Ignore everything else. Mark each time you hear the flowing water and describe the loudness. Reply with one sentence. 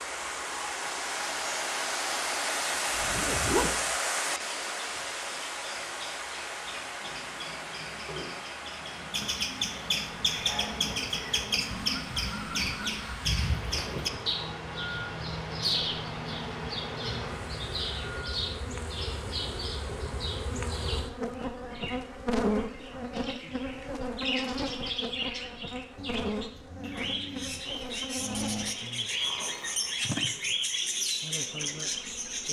The flowing water can be heard from 0.0 to 20.8 s, getting quieter.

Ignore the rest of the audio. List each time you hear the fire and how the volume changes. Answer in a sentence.
You can't hear the fire here.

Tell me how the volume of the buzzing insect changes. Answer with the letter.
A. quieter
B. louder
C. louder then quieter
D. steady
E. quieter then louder
C.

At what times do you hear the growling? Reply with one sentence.
The growling can be heard from 9.6 to 10.9 s and from 25.9 to 28.8 s.